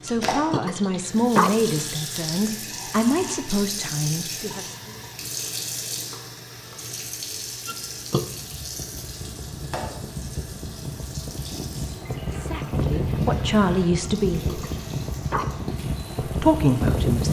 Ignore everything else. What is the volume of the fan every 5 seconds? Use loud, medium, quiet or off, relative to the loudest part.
off, quiet, loud, loud.